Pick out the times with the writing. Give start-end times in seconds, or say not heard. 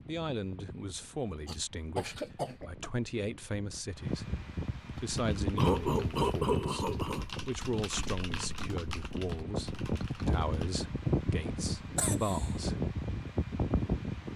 not heard.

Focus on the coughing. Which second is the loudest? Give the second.
6 s.